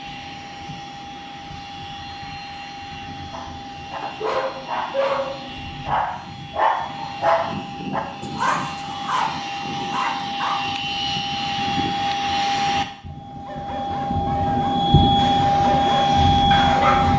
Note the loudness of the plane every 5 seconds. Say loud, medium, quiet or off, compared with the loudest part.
quiet, quiet, medium, loud.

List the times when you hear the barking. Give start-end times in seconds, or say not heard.
3.3-10.8, 13.4-17.1.